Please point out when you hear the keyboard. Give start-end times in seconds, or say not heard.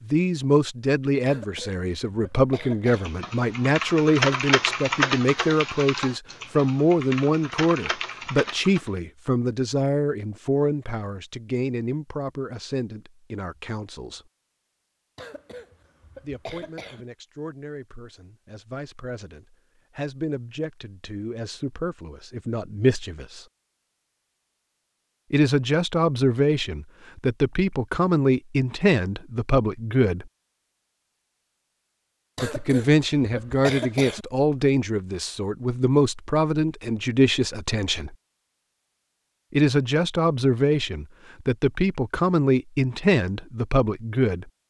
2.9-8.9.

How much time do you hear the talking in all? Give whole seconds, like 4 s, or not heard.
37 s.